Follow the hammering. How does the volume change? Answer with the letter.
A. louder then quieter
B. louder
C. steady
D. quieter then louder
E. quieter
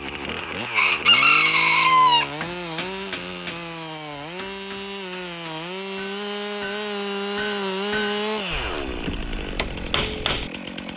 D.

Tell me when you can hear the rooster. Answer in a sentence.
You can hear the rooster from 0.8 to 2.3 s.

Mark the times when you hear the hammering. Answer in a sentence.
The hammering can be heard from 2.4 to 10.9 s.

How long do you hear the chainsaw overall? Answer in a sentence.
You can hear the chainsaw for 11 seconds altogether.